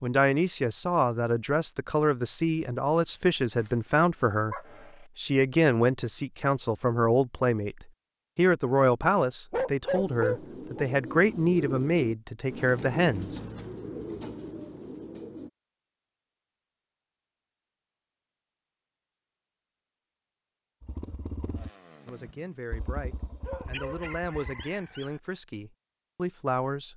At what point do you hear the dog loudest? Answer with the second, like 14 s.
10 s.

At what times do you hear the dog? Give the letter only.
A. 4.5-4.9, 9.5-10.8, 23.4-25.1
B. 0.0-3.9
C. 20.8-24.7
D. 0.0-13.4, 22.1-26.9
A.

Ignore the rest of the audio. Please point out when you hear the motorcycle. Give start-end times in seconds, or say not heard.
20.8-24.7.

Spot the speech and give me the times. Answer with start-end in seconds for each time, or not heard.
0.0-13.4, 22.1-26.9.